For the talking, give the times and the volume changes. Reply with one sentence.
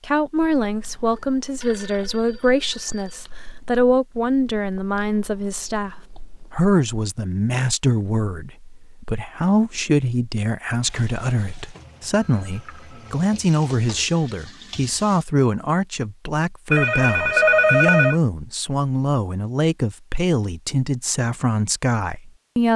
You can hear the talking from 0.0 to 22.7 s, at a steady volume.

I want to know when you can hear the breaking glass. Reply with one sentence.
You can't hear the breaking glass here.